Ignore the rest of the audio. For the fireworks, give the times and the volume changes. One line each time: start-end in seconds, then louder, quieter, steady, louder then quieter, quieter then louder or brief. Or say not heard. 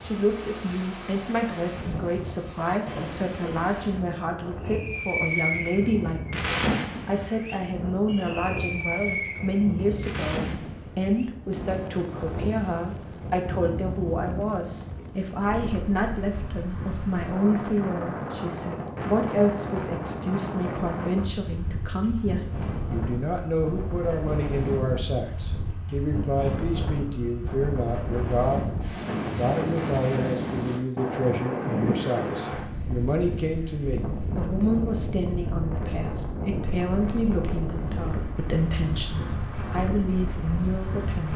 4.7-15.3 quieter.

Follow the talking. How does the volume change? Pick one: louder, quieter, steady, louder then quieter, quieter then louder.
steady.